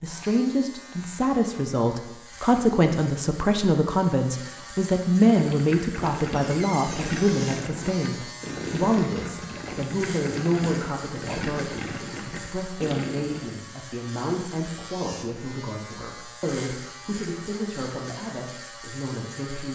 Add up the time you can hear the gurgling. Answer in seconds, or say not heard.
8 s.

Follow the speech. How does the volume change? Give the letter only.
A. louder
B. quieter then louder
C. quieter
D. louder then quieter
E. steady
C.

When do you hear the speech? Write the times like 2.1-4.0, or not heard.
0.0-19.7.